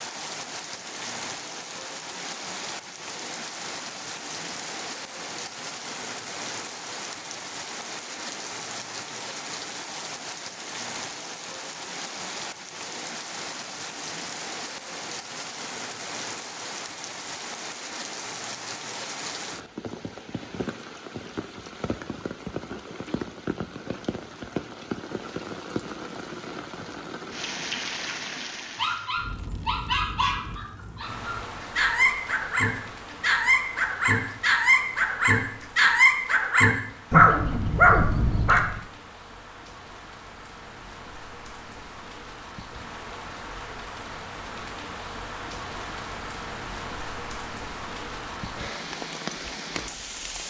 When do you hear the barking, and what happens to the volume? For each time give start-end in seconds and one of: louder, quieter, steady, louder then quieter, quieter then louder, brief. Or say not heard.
28.8-38.8 louder.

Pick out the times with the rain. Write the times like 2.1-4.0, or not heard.
0.0-50.4.